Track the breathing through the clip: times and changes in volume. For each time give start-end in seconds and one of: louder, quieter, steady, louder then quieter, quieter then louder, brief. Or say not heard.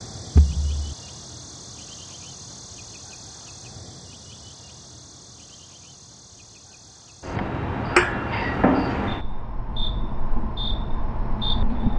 not heard.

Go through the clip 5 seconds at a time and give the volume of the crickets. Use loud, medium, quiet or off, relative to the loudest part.
quiet, loud, loud.